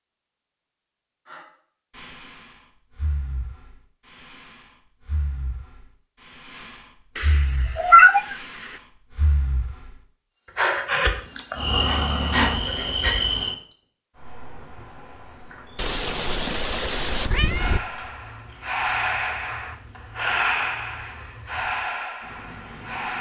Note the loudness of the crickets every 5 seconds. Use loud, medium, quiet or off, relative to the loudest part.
off, off, loud, quiet, quiet.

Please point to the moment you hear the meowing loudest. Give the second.
8 s.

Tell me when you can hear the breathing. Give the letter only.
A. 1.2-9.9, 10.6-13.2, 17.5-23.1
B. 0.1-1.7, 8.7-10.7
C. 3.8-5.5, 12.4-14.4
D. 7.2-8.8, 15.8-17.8
A.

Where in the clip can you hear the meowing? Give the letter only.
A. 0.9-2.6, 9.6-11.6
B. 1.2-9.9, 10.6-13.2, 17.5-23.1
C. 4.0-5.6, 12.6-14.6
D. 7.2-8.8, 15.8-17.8
D.